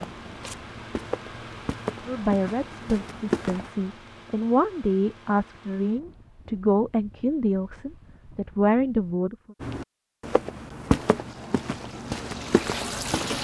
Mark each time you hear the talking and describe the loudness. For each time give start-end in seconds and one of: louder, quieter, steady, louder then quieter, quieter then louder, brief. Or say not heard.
2.0-9.6 louder.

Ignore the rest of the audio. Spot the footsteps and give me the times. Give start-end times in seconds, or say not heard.
0.0-3.7, 9.6-13.3.